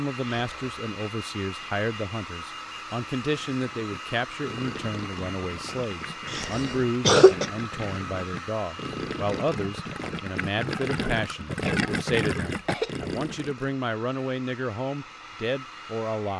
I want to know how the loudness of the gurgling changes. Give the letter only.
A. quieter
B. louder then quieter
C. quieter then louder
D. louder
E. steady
D.